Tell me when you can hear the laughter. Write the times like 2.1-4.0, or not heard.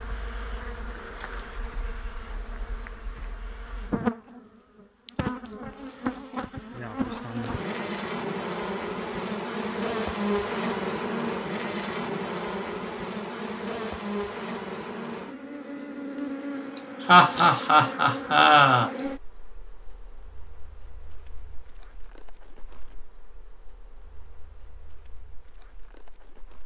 16.8-18.9.